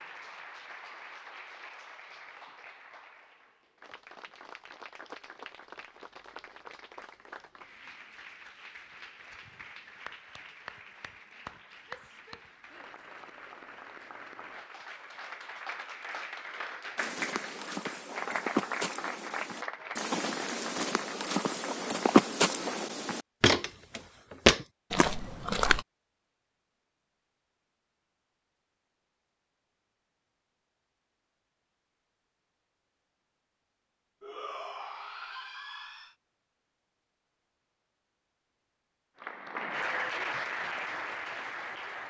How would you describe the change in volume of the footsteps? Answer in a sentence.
The volume of the footsteps goes up.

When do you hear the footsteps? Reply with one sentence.
The footsteps can be heard from 16.9 to 25.9 s.